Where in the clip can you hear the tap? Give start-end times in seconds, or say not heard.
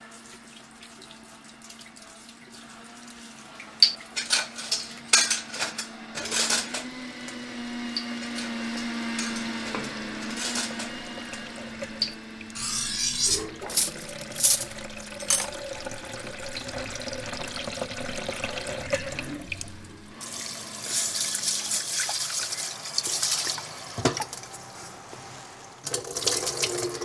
0.0-27.0.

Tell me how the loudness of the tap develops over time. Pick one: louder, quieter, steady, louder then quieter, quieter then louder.
louder.